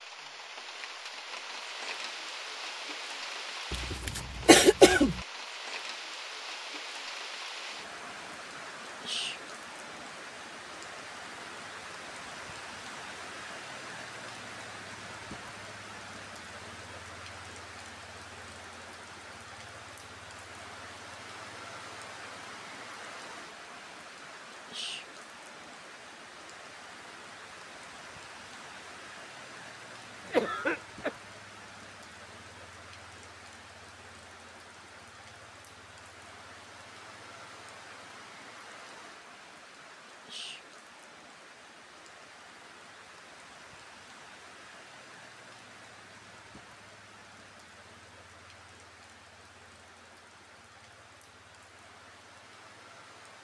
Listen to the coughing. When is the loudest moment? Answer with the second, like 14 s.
5 s.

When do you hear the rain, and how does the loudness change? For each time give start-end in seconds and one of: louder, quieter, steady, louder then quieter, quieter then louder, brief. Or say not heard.
0.0-53.3 quieter.